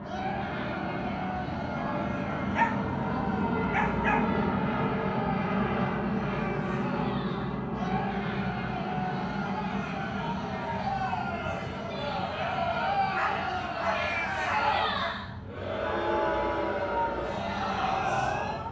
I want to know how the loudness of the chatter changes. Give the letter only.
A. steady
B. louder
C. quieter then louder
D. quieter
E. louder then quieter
B.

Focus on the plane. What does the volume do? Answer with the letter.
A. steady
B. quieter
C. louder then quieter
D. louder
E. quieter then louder
B.